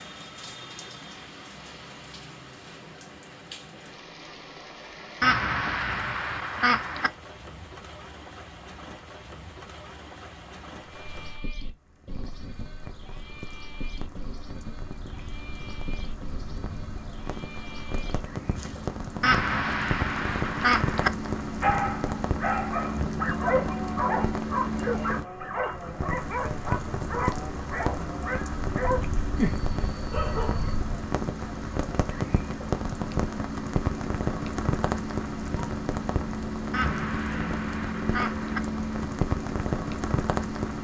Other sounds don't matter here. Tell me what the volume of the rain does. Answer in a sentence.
The loudness of the rain goes up.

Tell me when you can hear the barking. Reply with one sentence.
The barking can be heard from 21.6 to 30.8 s.